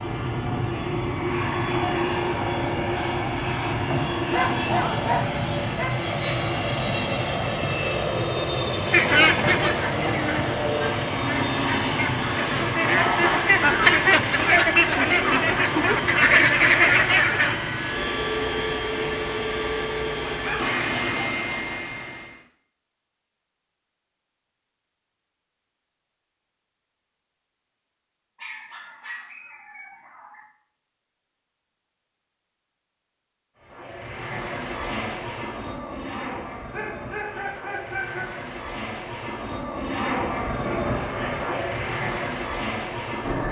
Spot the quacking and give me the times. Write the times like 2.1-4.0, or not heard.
8.9-17.6.